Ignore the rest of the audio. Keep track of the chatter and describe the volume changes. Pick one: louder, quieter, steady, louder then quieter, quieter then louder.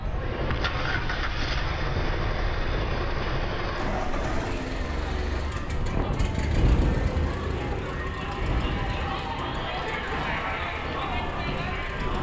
louder.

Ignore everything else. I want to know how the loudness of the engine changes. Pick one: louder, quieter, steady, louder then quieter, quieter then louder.
quieter.